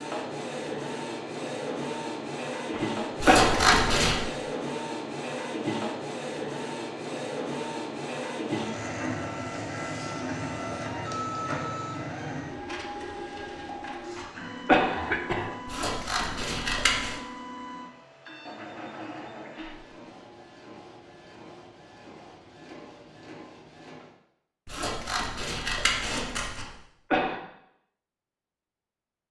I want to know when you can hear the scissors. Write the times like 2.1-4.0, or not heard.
3.2-4.2, 15.7-17.1, 24.6-26.6.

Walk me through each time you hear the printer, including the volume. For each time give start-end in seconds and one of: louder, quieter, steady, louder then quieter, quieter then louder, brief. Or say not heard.
0.0-24.1 quieter.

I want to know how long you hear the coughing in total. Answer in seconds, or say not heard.
3 s.